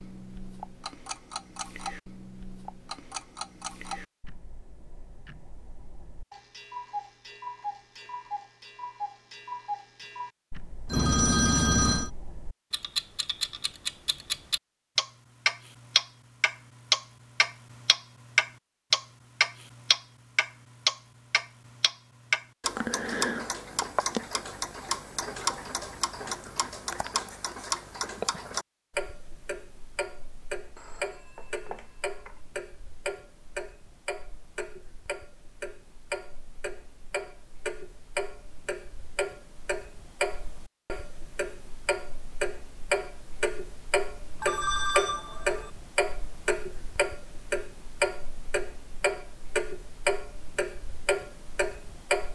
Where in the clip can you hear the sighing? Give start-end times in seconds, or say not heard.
not heard.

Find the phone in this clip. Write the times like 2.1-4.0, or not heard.
10.8-12.1, 30.8-32.4, 44.4-45.7.